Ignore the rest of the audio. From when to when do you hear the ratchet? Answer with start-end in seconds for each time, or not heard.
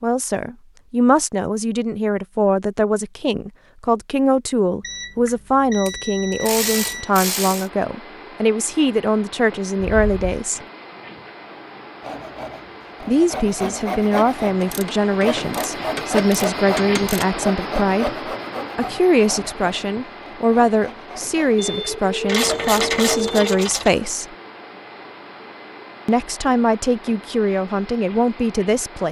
5.8-7.7, 14.6-17.3, 22.2-23.9.